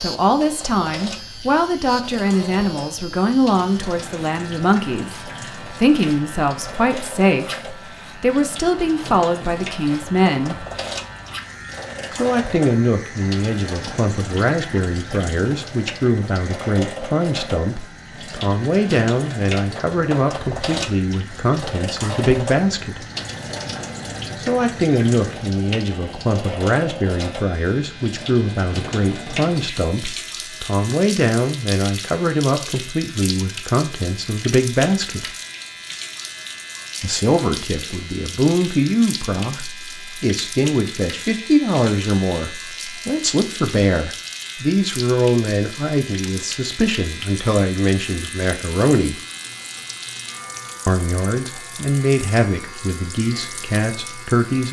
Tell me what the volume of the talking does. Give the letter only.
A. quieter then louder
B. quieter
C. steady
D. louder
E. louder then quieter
C.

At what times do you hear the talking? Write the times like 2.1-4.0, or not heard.
0.0-10.7, 12.1-23.1, 24.4-35.2, 37.0-49.1, 50.9-54.6.